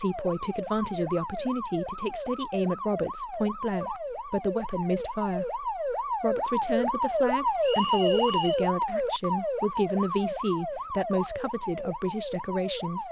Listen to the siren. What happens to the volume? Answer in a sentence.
The loudness of the siren goes up, then down.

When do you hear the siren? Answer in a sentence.
You can hear the siren from 0.0 to 13.0 s.